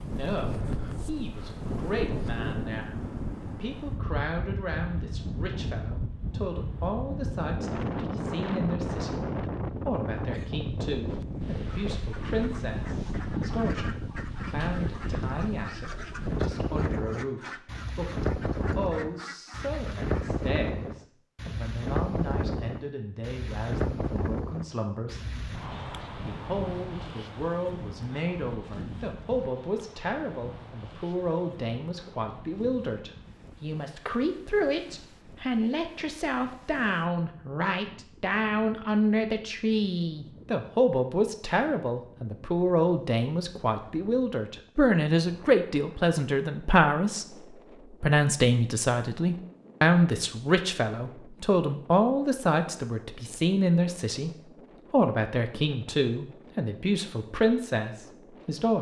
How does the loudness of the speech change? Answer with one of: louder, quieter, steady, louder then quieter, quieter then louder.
louder.